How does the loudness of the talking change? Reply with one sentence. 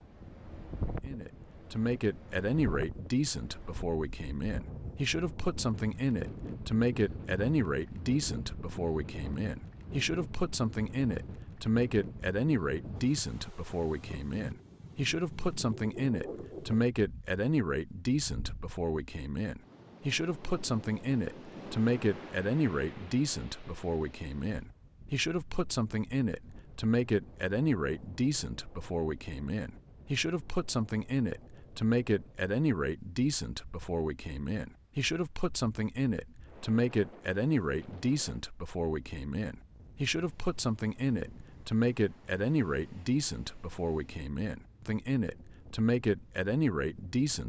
The volume of the talking stays about the same.